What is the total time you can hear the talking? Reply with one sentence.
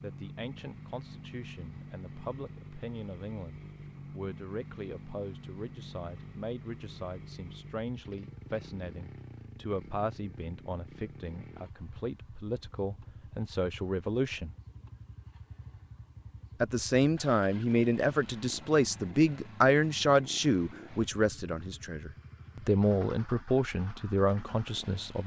The talking can be heard for 23 seconds in total.